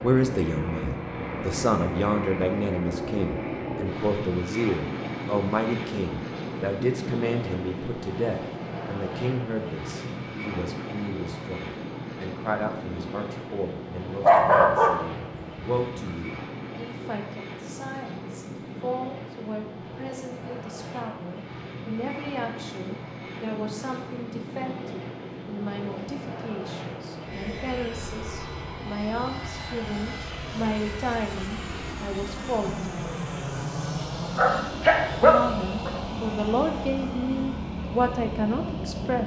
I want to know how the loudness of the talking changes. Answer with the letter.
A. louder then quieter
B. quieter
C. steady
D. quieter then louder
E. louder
D.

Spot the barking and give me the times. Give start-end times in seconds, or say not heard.
14.2-16.1, 34.4-35.9.